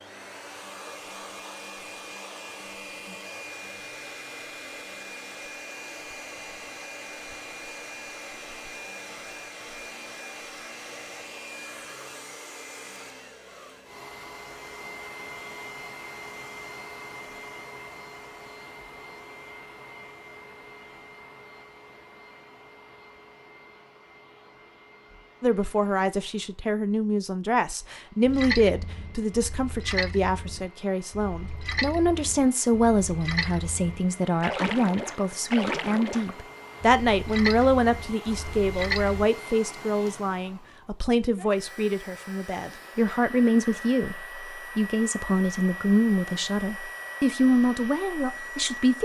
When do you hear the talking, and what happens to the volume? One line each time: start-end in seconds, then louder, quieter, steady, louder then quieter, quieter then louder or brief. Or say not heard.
25.4-49.0 steady.